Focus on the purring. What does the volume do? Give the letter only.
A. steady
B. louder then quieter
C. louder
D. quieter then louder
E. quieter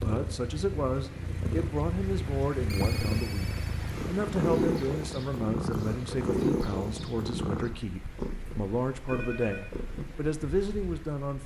B.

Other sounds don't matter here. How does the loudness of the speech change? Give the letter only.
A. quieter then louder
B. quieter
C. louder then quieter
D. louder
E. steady
E.